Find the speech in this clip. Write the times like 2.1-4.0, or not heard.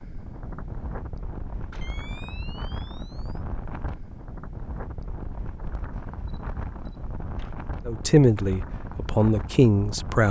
7.8-10.2.